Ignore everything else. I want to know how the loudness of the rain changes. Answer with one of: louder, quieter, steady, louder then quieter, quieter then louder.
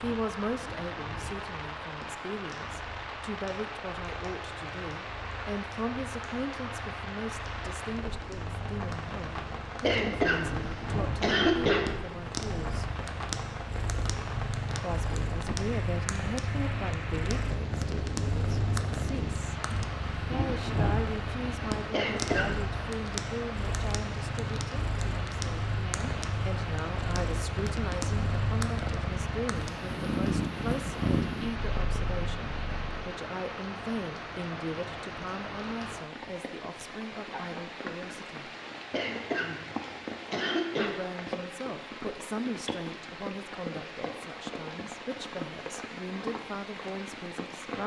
steady.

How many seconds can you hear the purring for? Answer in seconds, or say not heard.
33 s.